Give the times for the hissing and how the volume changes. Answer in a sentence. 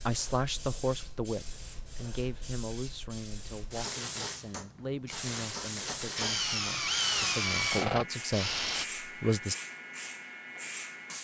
You can hear the hissing from 0.0 to 11.1 s, getting louder.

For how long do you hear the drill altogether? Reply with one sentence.
You can hear the drill for 3 seconds altogether.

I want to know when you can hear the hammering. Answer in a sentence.
The hammering can be heard from 3.8 to 6.4 s.